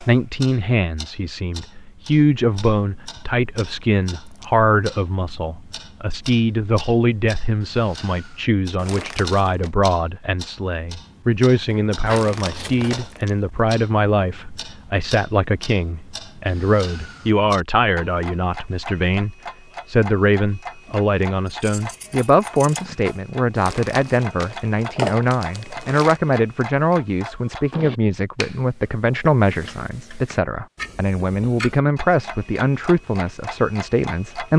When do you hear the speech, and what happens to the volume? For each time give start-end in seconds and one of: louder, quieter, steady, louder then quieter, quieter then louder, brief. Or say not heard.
0.0-34.5 steady.